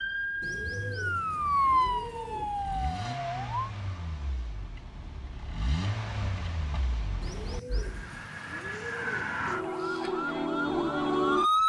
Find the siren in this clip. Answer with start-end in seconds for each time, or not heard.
0.0-3.7, 7.7-11.6.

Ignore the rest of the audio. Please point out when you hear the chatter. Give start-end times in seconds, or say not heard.
not heard.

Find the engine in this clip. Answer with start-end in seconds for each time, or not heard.
0.0-8.2.